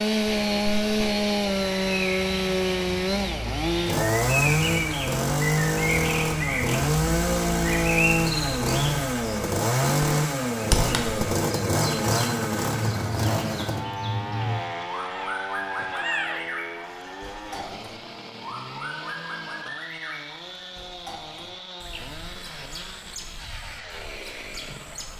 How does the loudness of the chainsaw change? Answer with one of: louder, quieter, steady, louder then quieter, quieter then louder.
quieter.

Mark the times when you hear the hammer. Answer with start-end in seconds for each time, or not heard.
not heard.